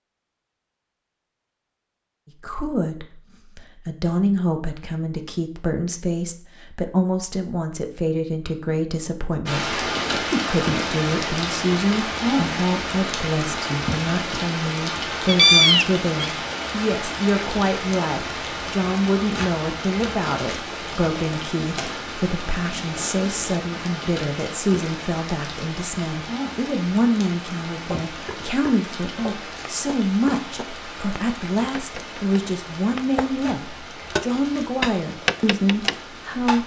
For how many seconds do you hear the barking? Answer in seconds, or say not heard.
not heard.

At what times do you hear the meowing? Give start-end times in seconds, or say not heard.
15.2-16.3.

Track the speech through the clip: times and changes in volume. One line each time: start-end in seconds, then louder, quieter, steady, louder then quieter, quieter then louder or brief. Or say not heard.
2.4-36.6 steady.